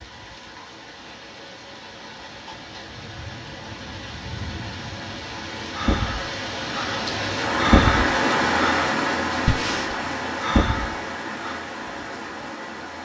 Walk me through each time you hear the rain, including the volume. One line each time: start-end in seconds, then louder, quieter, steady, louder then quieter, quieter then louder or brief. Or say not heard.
0.0-13.0 louder then quieter.